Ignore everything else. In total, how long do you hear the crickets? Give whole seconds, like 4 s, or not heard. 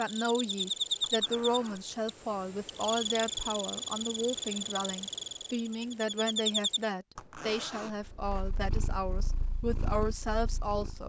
7 s.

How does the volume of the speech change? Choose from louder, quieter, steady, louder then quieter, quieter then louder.
steady.